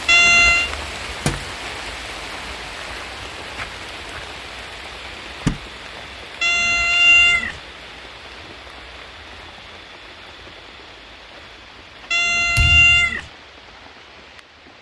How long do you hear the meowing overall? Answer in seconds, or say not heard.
3 s.